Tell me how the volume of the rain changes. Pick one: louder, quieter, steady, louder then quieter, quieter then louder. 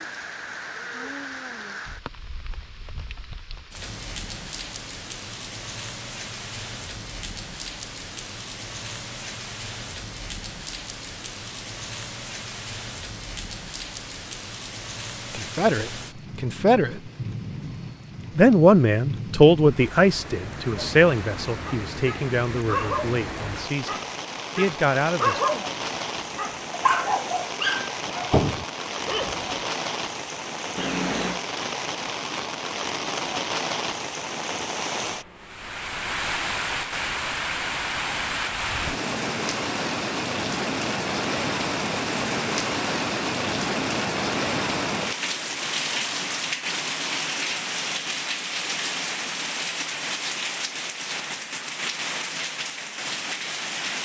louder.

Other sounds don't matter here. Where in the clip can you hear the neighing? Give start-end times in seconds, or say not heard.
30.8-31.4.